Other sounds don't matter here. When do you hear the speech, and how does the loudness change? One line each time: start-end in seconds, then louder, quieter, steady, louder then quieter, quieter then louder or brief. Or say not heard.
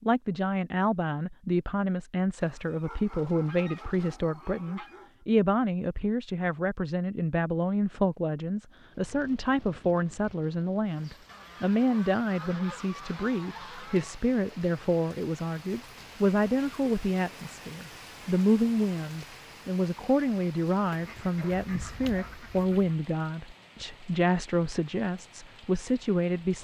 0.0-26.5 steady.